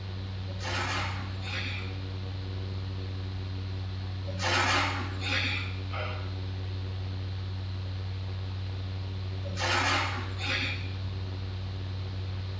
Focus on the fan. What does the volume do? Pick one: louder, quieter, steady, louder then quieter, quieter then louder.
steady.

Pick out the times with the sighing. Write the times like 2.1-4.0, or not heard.
0.5-1.9, 4.2-6.2, 9.4-10.8.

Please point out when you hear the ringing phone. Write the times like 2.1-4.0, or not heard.
not heard.